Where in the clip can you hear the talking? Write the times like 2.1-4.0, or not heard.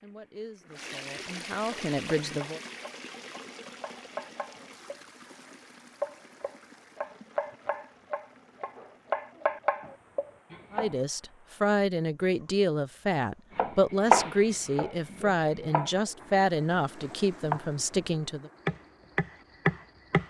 0.0-2.6, 10.7-18.5.